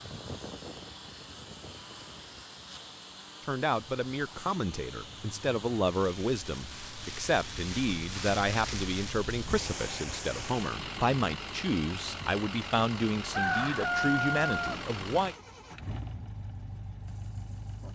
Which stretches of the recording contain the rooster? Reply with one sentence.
The rooster can be heard from 13.3 to 14.8 s.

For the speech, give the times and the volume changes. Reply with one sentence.
You can hear the speech from 3.5 to 15.3 s, at a steady volume.